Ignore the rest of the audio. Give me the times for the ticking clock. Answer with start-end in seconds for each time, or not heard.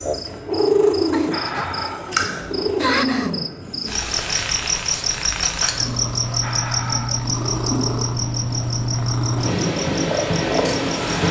not heard.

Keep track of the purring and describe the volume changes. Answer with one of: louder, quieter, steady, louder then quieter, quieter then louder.
quieter then louder.